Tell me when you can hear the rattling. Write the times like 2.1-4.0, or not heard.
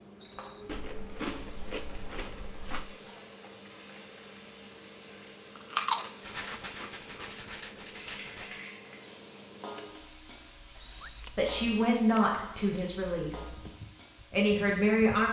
0.2-0.7, 6.2-8.7, 10.8-11.2.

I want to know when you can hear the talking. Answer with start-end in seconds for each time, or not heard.
11.3-13.3, 14.3-15.2.